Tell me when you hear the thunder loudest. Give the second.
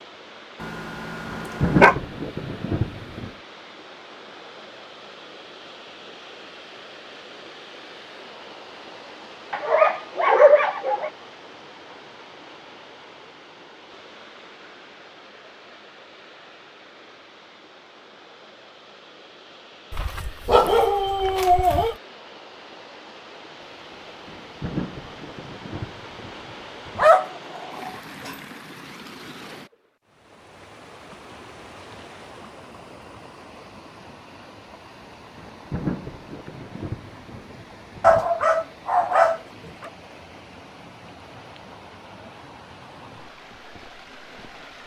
2 s.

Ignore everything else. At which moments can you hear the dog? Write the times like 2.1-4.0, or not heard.
0.6-1.9, 9.5-11.1, 19.9-21.9, 26.9-28.4, 38.0-39.9.